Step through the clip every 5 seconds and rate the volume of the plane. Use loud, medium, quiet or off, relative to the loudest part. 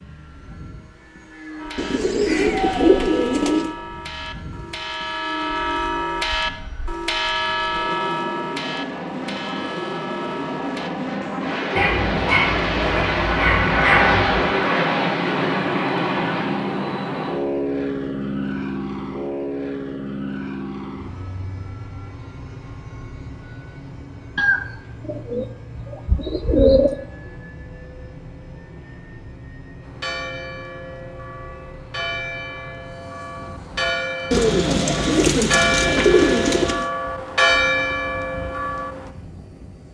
quiet, medium, loud, loud, quiet, quiet, quiet, quiet.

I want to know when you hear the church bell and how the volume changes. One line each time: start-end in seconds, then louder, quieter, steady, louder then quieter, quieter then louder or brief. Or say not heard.
1.6-10.9 louder then quieter
29.8-39.1 louder.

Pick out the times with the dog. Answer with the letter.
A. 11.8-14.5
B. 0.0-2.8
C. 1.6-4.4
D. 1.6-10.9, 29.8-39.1
A.